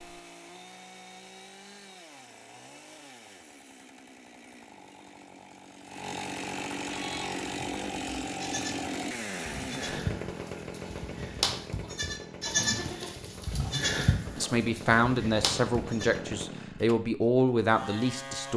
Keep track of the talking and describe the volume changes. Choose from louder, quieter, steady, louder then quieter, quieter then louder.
quieter then louder.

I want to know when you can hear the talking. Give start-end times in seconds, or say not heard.
14.3-18.5.